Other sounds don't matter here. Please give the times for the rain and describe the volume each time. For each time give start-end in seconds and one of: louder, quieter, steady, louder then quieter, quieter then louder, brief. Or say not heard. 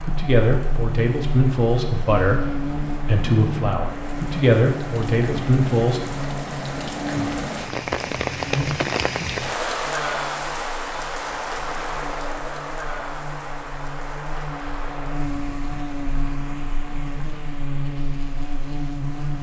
0.0-19.3 louder then quieter.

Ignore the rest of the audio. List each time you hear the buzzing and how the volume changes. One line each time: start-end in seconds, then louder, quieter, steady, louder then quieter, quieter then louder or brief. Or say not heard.
0.0-19.3 quieter then louder.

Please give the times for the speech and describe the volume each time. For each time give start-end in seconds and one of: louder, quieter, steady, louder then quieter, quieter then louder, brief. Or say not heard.
0.0-6.0 steady.